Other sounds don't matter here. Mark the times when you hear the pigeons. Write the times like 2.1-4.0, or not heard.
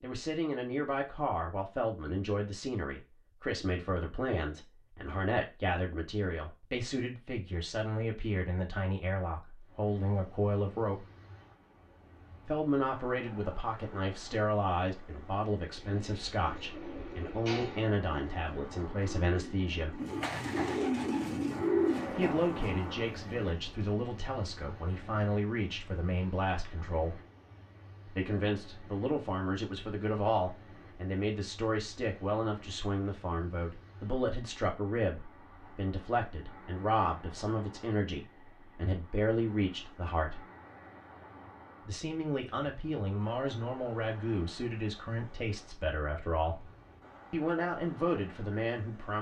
15.6-22.9.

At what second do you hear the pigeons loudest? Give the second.
22 s.